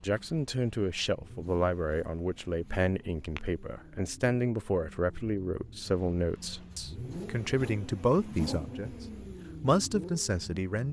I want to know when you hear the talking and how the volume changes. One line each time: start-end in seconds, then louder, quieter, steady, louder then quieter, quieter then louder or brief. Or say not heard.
0.0-10.8 steady.